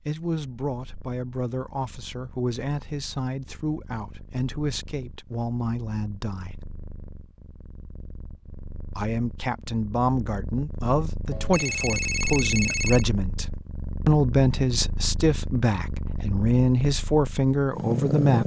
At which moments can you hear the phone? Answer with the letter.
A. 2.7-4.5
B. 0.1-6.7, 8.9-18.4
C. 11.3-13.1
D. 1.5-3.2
C.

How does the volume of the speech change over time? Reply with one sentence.
The loudness of the speech goes up.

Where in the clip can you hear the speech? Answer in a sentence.
The speech can be heard from 0.1 to 6.7 s and from 8.9 to 18.4 s.